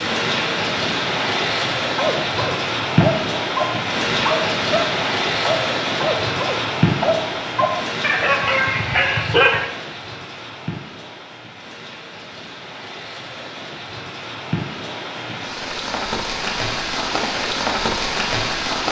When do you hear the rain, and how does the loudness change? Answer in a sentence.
The rain can be heard from 0.0 to 18.8 s, getting quieter then louder.